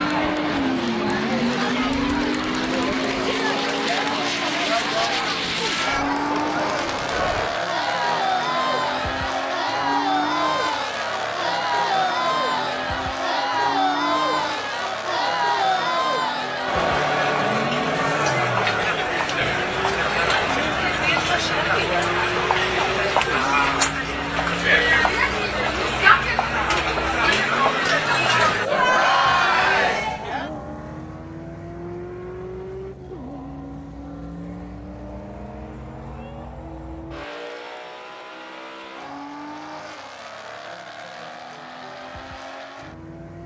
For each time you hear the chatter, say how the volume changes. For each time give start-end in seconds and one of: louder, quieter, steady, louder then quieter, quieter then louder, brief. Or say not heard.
0.0-30.5 louder.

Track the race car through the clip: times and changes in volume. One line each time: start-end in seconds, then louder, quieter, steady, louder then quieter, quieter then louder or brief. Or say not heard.
0.0-43.4 quieter.